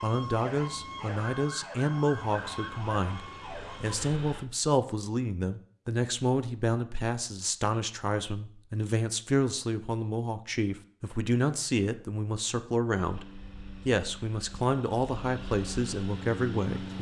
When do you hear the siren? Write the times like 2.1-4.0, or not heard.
0.0-4.0.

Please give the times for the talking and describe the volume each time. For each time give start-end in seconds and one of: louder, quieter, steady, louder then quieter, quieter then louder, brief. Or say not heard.
0.0-16.9 steady.